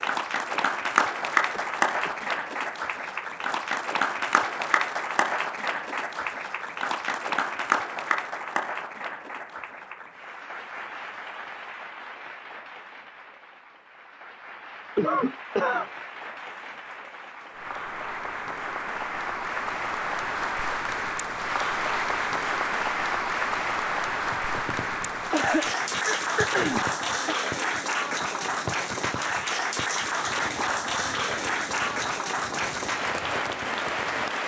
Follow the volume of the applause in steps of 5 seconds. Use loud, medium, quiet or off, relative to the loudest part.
loud, loud, quiet, medium, loud, loud, loud.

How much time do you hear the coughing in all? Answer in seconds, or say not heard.
4 s.